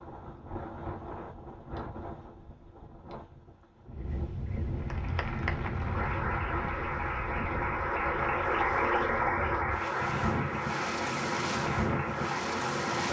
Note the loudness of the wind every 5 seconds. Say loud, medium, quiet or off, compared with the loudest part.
medium, medium, loud.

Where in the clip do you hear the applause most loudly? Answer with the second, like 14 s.
9 s.